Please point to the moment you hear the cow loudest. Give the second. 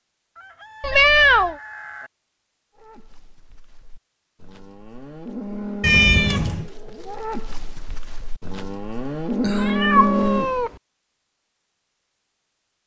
10 s.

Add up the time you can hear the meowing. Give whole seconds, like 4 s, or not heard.
3 s.